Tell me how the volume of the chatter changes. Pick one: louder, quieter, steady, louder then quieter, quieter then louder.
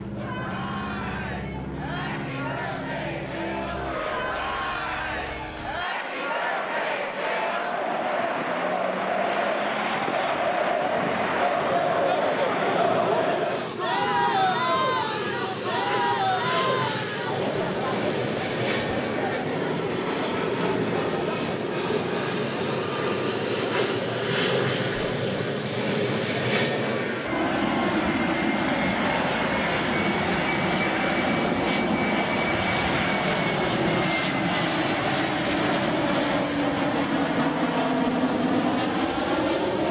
louder then quieter.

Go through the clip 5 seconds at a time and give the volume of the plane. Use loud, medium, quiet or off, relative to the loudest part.
medium, medium, medium, medium, loud, loud, loud, loud.